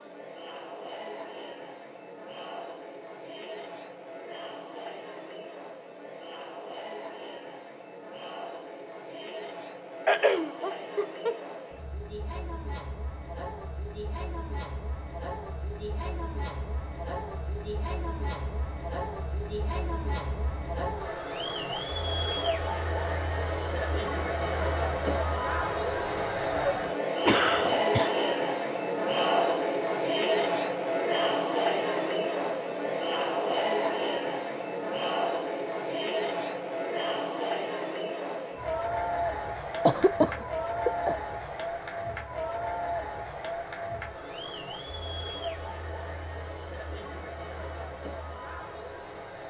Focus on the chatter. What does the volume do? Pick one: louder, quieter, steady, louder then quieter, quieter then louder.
louder then quieter.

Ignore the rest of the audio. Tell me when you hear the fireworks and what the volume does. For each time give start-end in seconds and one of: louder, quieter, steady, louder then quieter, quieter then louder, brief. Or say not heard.
not heard.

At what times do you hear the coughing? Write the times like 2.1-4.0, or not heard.
10.1-11.3, 27.2-28.1, 39.9-41.1.